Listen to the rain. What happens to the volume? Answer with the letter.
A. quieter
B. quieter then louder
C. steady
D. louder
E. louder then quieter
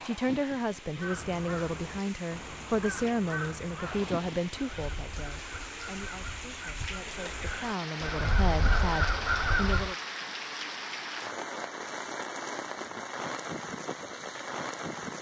D.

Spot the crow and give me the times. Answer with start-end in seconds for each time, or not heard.
0.9-9.9.